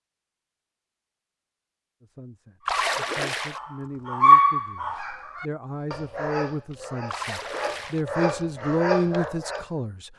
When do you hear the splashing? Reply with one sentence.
You can hear the splashing from 2.6 to 3.6 s and from 7.0 to 8.1 s.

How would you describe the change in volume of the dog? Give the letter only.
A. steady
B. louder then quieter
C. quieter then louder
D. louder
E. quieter
C.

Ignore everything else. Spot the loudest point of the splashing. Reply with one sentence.
The volume of the splashing peaks at 3 seconds.